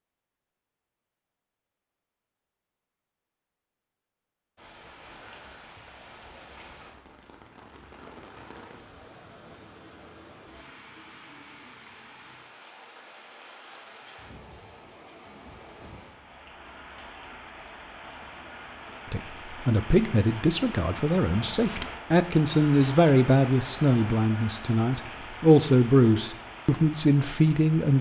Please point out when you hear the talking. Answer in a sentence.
You can hear the talking from 19.1 to 27.9 s.